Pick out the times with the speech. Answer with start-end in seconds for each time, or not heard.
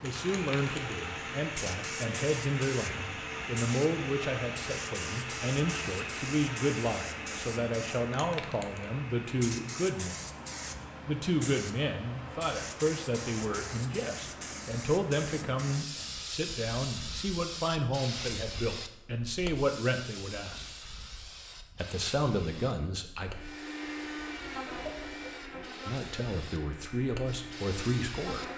0.0-10.2, 11.1-20.6, 21.8-23.3, 25.9-28.4.